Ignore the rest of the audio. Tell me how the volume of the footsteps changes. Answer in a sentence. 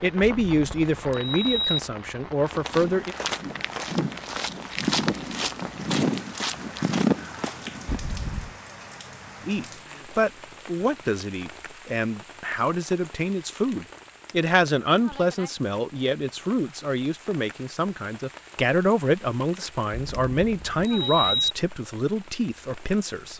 The volume of the footsteps goes up.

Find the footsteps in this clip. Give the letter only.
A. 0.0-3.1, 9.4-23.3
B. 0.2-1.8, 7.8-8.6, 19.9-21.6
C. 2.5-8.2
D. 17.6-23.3
C.